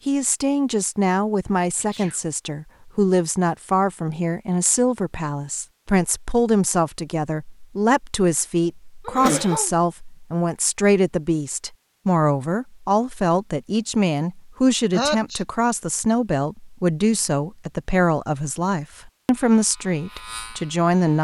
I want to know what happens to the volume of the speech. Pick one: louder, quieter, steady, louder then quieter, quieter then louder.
steady.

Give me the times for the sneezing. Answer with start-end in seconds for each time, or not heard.
1.8-2.2, 9.1-9.7, 14.9-15.4.